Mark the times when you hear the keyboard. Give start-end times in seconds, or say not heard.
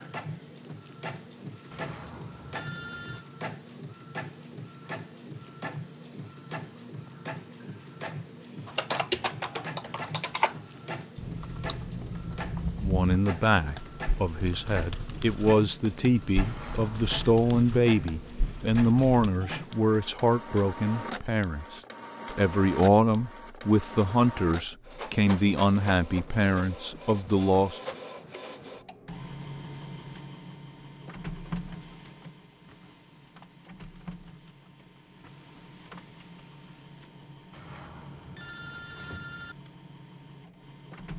8.7-19.3.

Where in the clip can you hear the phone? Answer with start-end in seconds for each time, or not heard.
1.7-3.2, 16.4-17.3, 37.5-39.5.